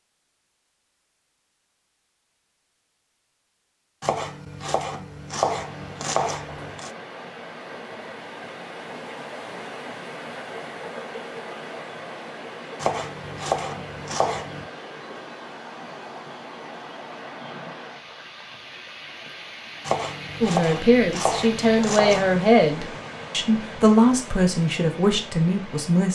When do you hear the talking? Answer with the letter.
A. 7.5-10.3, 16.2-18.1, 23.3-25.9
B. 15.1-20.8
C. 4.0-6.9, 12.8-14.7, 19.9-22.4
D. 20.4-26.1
D.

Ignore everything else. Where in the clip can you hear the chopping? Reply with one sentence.
The chopping can be heard from 4.0 to 6.9 s, from 12.8 to 14.7 s and from 19.9 to 22.4 s.